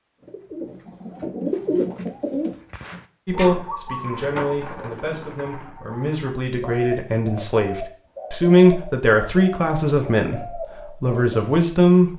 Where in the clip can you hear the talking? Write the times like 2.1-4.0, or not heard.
3.2-12.1.